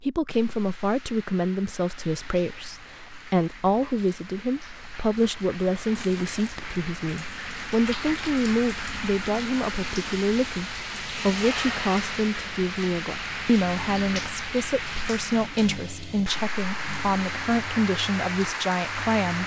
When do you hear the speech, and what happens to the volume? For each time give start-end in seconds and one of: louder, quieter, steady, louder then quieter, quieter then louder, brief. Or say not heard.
0.0-19.4 steady.